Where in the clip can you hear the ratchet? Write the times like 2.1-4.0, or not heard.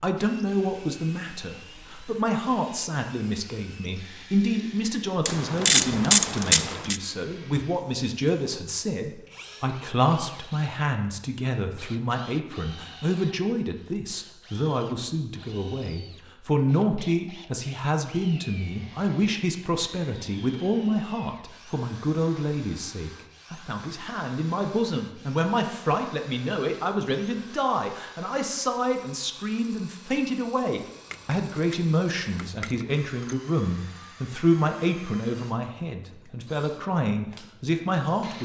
5.2-7.0, 31.1-33.4.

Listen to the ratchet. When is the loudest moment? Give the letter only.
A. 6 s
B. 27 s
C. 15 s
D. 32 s
A.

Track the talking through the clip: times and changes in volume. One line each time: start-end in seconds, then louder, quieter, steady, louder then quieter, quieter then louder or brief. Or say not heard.
0.0-38.4 steady.